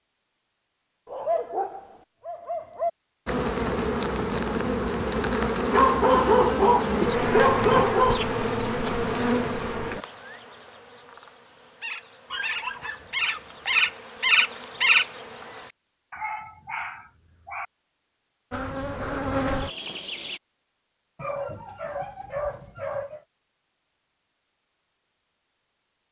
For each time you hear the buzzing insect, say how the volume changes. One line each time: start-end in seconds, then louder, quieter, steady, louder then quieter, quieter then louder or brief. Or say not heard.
3.2-15.7 quieter then louder
18.5-20.4 brief.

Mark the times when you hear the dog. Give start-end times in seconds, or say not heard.
1.1-2.9, 5.7-8.2, 12.3-13.9, 16.1-17.6, 21.1-23.2.